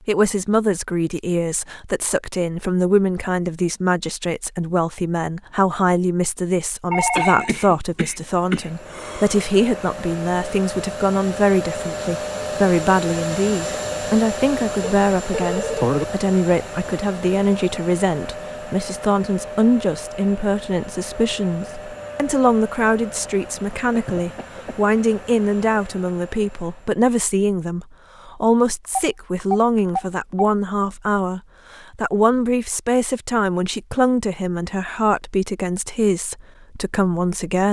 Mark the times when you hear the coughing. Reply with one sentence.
You can hear the coughing from 7.2 to 9.5 s and from 23.9 to 24.9 s.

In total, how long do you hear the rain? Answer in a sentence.
The rain can't be heard in this clip.